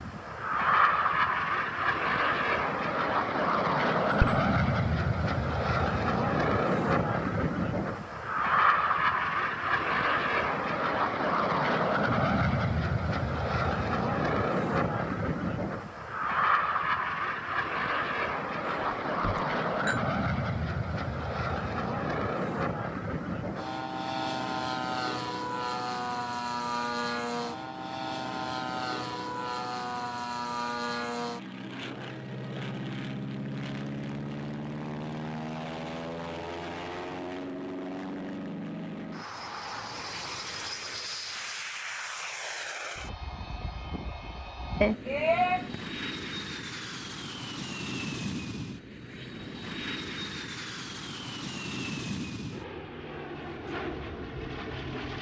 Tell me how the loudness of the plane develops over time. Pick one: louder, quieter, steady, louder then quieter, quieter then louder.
quieter.